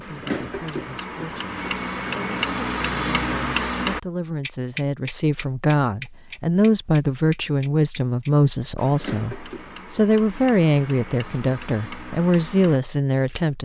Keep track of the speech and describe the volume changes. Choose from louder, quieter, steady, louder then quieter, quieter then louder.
louder.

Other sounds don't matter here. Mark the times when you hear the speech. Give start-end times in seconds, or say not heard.
0.0-13.5.